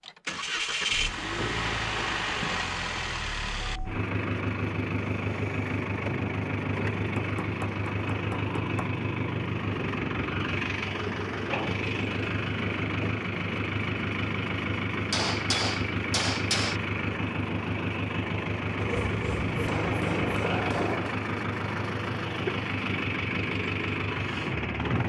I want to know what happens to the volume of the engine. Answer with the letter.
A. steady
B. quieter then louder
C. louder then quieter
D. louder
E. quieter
A.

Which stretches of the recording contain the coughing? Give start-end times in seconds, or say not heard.
not heard.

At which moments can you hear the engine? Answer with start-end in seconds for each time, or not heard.
0.0-25.0.